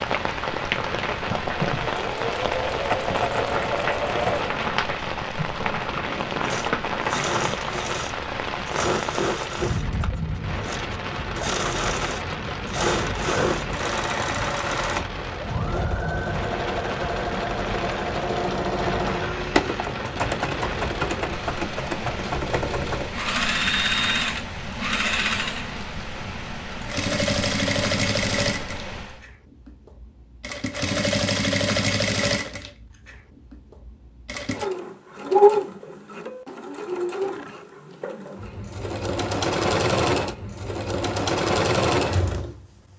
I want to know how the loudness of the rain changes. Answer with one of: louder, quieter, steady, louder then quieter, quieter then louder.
quieter.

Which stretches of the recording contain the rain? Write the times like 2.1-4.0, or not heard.
0.0-29.2.